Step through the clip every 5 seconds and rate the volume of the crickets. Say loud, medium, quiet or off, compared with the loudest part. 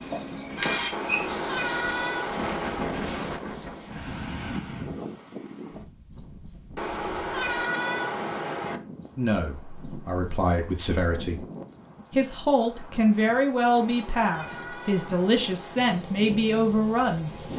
medium, loud, loud, medium.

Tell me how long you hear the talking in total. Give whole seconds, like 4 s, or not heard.
8 s.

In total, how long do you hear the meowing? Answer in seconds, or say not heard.
6 s.